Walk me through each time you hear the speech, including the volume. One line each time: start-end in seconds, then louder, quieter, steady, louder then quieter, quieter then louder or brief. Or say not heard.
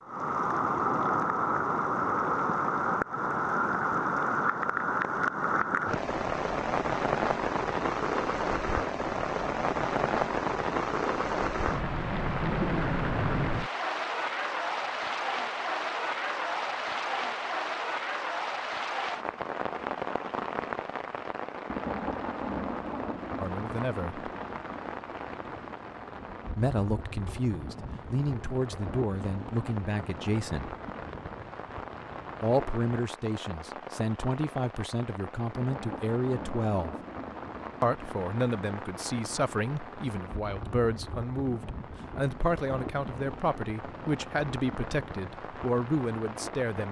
23.4-24.2 brief
26.6-30.8 steady
32.4-37.0 steady
37.8-46.8 steady.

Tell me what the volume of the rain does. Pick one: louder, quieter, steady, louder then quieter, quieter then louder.
quieter.